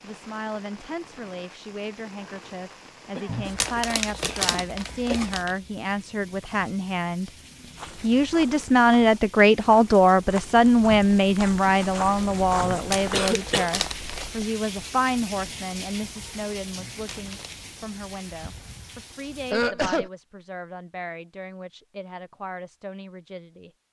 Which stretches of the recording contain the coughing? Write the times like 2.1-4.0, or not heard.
3.1-5.3, 13.1-13.7, 19.5-20.1.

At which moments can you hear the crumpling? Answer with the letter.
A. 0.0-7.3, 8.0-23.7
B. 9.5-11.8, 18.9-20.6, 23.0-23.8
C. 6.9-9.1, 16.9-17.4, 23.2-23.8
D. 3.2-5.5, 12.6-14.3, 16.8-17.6
D.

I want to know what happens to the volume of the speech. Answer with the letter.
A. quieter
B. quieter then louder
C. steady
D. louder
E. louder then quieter
E.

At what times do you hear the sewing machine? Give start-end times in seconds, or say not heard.
not heard.